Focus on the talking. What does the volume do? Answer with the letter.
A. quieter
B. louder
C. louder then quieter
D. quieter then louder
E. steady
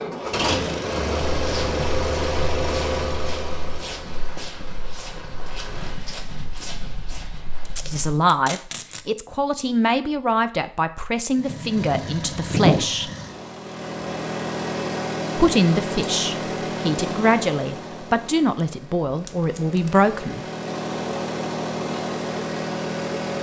E.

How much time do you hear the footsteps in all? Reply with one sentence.
You can hear the footsteps for 7 seconds altogether.